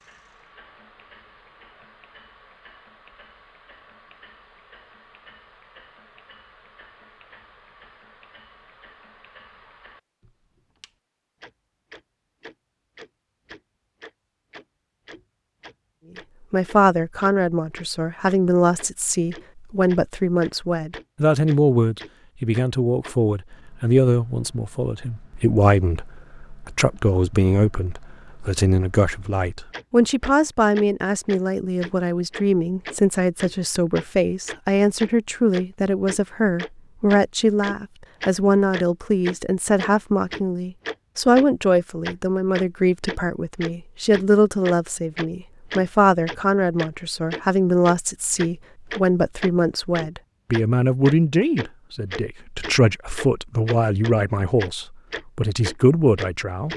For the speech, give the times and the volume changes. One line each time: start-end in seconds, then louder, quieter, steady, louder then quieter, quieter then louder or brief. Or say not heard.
16.5-56.7 steady.